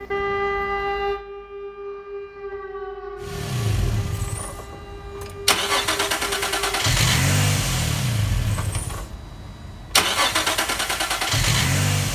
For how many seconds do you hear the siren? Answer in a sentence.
You can hear the siren for 7 seconds altogether.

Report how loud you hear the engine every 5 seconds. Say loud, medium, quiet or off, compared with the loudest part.
medium, loud, loud.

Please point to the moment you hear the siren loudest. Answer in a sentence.
The loudest moment of the siren is at 1 second.